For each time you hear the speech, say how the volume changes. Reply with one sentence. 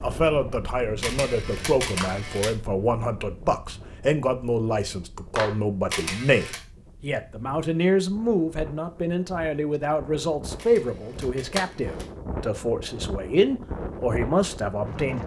You can hear the speech from 0.0 to 15.2 s, at a steady volume.